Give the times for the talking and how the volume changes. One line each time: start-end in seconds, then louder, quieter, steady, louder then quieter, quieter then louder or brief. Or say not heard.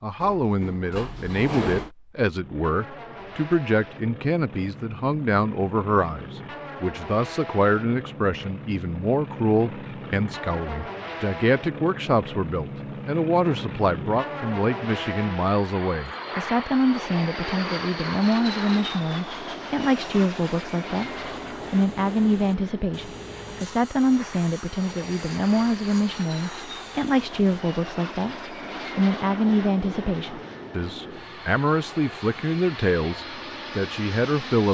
0.0-34.6 steady.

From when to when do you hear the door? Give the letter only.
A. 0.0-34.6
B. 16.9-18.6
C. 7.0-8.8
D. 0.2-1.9
D.